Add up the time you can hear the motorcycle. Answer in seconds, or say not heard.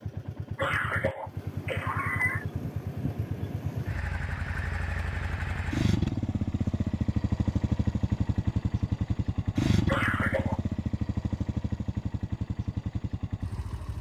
14 s.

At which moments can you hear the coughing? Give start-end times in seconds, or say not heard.
0.6-2.5, 9.8-10.6.